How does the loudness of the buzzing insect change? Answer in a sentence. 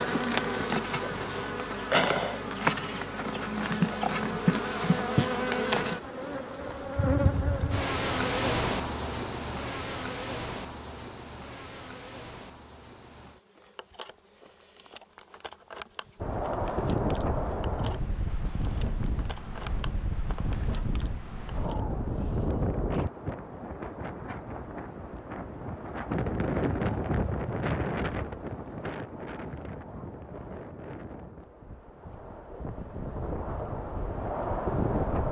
The volume of the buzzing insect goes down.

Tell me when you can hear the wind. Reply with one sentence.
You can hear the wind from 16.1 to 35.2 s.